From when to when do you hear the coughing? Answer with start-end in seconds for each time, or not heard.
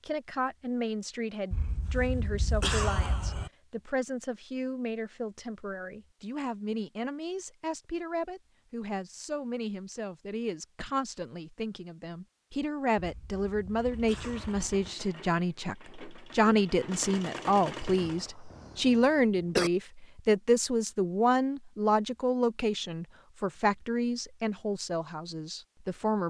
1.5-3.5, 12.9-14.9, 17.9-19.7.